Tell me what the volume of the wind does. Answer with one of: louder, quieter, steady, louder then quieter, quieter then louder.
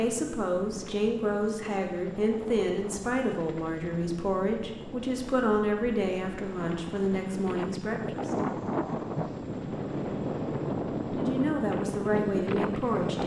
louder.